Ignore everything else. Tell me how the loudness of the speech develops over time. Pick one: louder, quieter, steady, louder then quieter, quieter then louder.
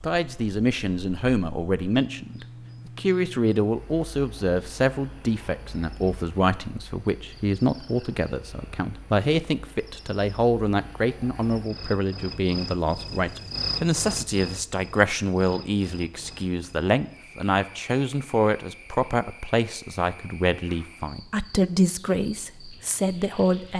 steady.